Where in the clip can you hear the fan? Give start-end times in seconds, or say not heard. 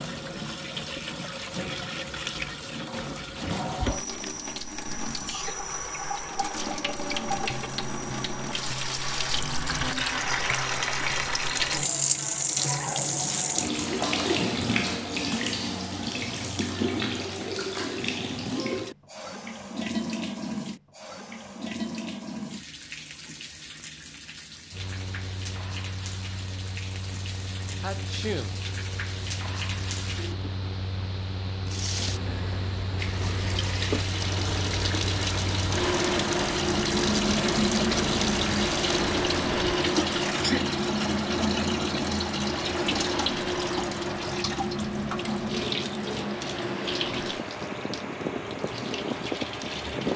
24.7-50.1.